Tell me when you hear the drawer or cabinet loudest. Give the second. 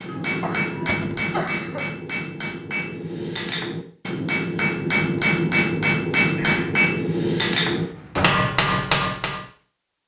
8 s.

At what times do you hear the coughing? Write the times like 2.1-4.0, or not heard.
0.1-1.9, 6.3-6.8.